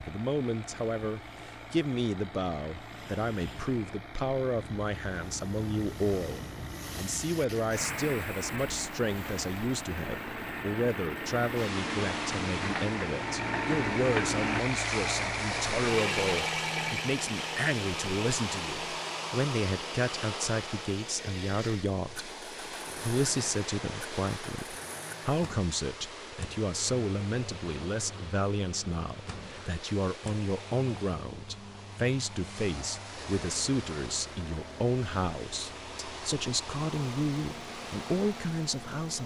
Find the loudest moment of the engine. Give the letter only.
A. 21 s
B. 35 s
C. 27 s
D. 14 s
D.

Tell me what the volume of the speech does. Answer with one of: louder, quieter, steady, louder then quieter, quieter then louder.
steady.